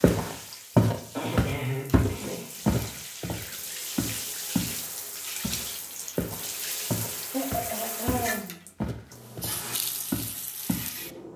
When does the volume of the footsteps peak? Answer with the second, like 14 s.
1 s.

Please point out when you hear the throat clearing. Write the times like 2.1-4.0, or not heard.
1.1-3.0, 7.3-8.6.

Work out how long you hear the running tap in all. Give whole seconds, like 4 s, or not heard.
11 s.